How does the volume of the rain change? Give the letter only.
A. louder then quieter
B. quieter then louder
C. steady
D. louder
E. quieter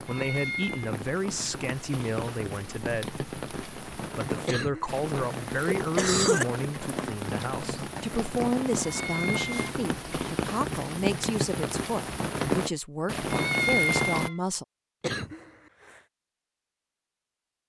D.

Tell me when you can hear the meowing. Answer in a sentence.
You can hear the meowing from 0.1 to 0.9 s, from 8.8 to 9.6 s and from 13.3 to 14.3 s.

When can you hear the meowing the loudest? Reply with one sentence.
The volume of the meowing peaks at 14 seconds.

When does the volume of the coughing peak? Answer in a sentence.
The volume of the coughing peaks at 6 seconds.